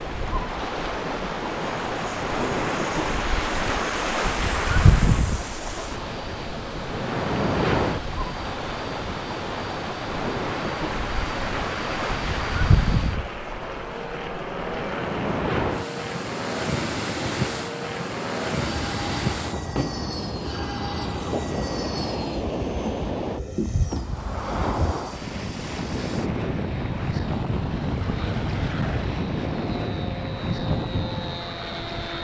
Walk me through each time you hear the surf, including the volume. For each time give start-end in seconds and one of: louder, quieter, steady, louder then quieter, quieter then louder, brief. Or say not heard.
0.0-32.1 quieter.